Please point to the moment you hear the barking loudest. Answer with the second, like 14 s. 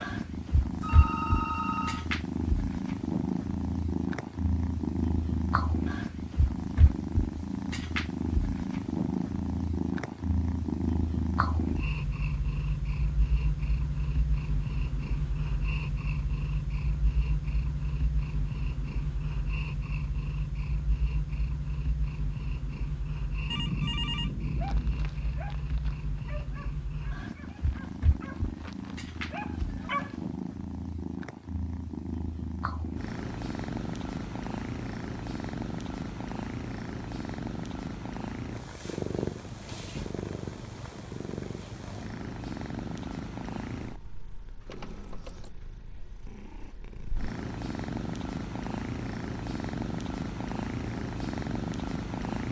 30 s.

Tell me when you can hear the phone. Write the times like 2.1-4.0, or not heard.
0.8-2.1, 23.5-25.1, 44.6-45.5.